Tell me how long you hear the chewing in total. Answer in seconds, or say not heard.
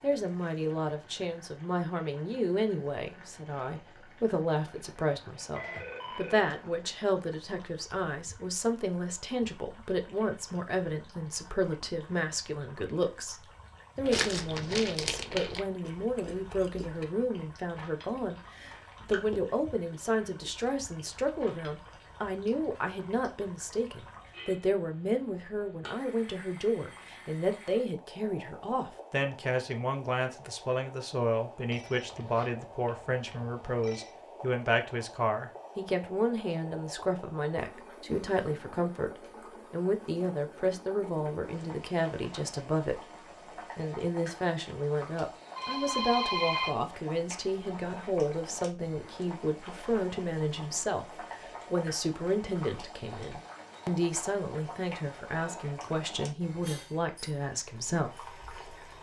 8 s.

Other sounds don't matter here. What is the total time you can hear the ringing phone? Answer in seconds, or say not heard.
5 s.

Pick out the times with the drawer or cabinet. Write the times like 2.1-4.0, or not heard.
not heard.